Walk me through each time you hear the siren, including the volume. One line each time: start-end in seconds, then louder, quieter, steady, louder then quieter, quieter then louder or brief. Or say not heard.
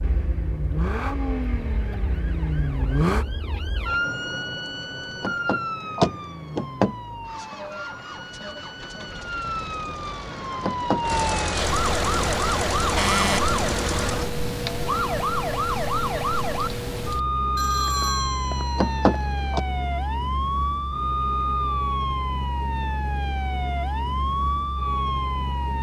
0.0-25.7 louder.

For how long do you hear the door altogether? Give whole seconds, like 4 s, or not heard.
3 s.